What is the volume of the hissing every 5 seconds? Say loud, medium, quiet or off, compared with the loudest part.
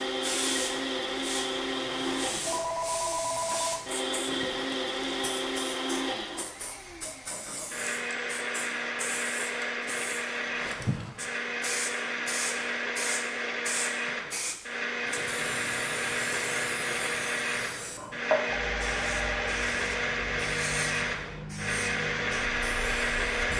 loud, medium, loud, loud, loud.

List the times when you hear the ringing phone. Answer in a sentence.
You can hear the ringing phone from 2.5 to 3.9 s and from 18.5 to 19.6 s.